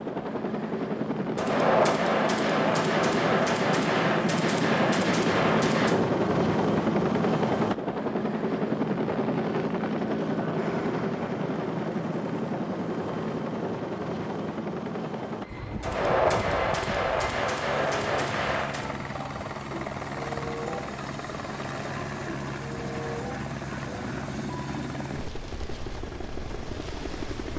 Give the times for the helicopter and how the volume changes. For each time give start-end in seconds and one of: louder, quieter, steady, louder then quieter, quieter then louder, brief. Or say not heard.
0.0-27.5 quieter.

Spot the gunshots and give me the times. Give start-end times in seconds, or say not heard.
1.4-6.0, 15.8-18.9.